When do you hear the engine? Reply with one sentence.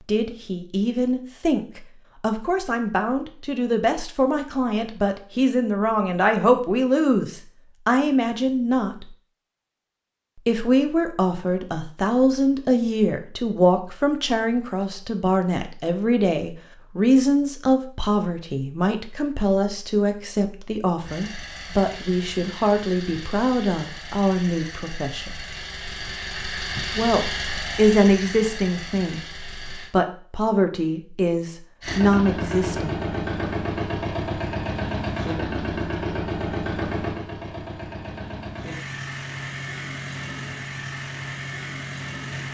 You can hear the engine from 21.0 to 29.9 s and from 31.8 to 42.4 s.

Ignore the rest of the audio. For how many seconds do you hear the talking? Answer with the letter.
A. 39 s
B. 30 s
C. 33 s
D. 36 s
B.